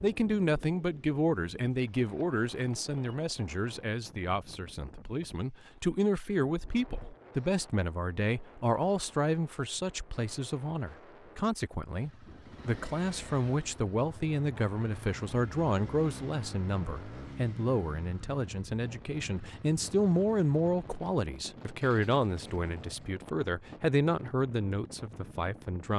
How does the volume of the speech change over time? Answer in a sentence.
The loudness of the speech stays about the same.